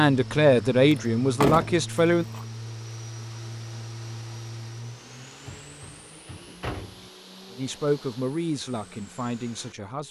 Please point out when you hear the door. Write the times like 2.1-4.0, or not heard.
0.9-2.5, 5.5-7.1.